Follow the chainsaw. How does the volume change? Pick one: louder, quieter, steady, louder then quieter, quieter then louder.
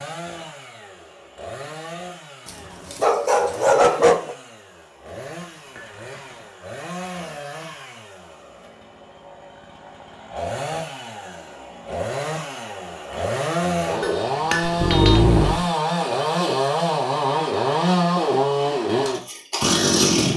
louder.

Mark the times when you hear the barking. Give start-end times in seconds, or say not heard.
2.5-4.3, 14.6-15.7.